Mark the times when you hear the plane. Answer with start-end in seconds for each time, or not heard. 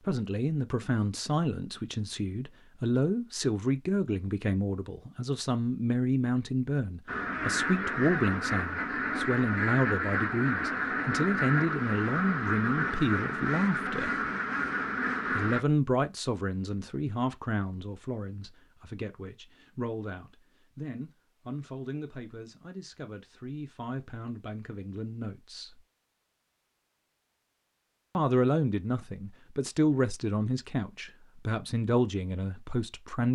not heard.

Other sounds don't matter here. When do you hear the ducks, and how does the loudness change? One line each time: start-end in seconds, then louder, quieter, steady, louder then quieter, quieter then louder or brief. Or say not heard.
7.0-15.7 steady.